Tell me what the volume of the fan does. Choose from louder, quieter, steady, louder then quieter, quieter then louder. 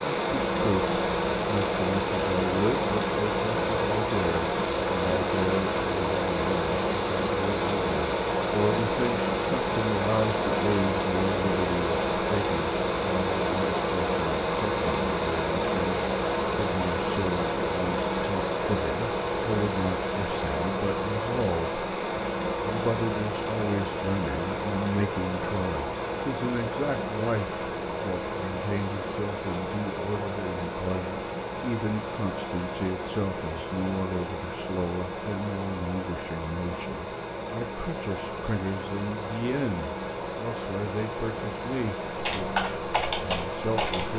quieter.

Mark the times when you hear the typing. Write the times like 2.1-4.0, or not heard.
42.2-44.1.